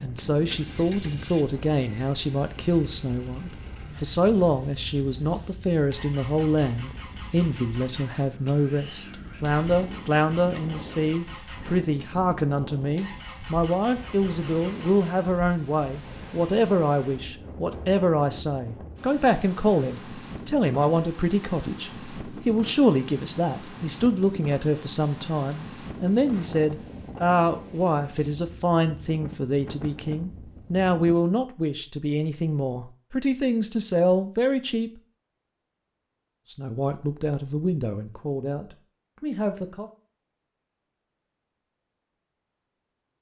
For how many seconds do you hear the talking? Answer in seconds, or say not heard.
38 s.